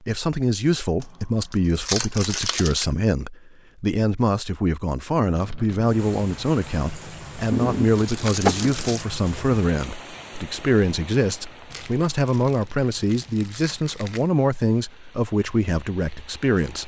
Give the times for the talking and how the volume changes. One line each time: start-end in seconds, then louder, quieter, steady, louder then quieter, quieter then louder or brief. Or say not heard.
0.1-16.8 steady.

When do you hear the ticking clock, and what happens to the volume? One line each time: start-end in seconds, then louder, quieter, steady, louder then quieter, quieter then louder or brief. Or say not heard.
not heard.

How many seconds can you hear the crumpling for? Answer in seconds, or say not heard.
6 s.